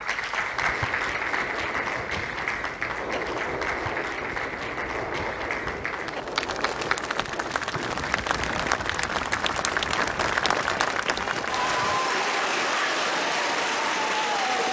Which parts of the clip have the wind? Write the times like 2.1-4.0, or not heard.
0.1-12.0.